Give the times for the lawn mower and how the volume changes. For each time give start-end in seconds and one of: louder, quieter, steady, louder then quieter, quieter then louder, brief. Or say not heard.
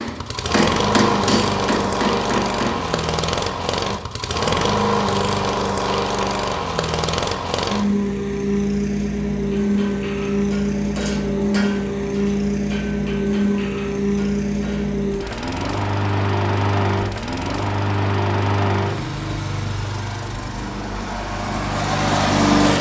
0.0-22.7 steady.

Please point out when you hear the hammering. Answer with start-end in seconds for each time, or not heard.
0.0-3.0, 9.4-15.4.